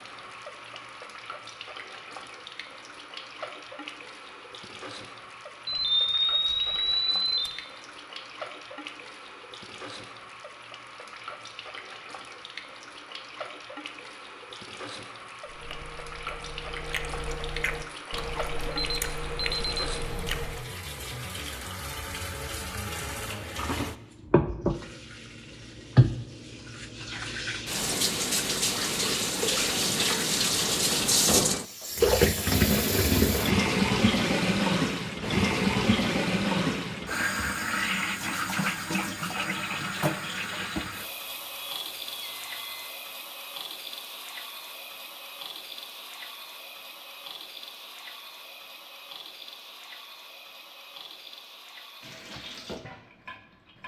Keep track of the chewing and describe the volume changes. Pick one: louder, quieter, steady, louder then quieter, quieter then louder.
louder.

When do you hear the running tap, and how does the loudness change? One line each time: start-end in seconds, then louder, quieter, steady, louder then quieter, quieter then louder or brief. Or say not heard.
0.0-53.8 louder then quieter.